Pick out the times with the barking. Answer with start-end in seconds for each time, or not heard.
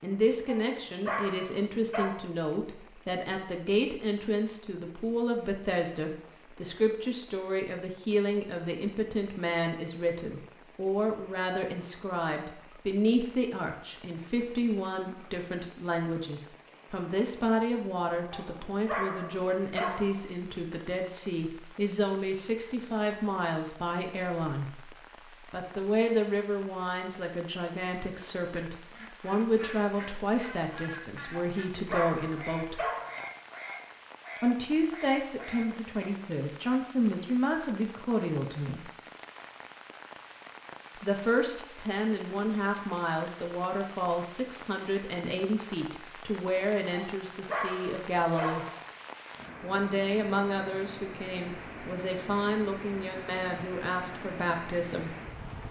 0.5-2.1, 18.3-20.2, 31.3-33.2, 46.9-48.9.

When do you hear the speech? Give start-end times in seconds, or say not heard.
0.0-32.8, 34.4-38.9, 41.0-48.6, 49.6-55.1.